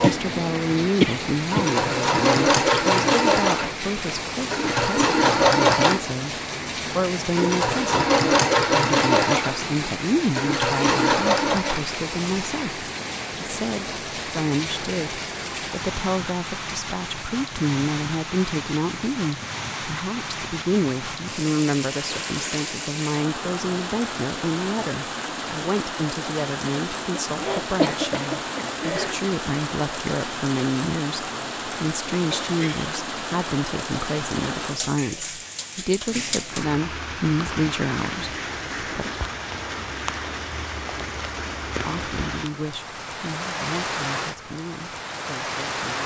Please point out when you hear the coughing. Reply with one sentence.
You can hear the coughing from 1.0 to 1.6 s, from 27.1 to 29.1 s and from 32.3 to 32.9 s.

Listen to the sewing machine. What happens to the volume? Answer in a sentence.
The volume of the sewing machine stays about the same.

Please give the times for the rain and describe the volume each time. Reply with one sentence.
The rain can be heard from 0.0 to 46.0 s, at a steady volume.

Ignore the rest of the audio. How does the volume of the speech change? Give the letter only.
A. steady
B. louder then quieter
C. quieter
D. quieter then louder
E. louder
A.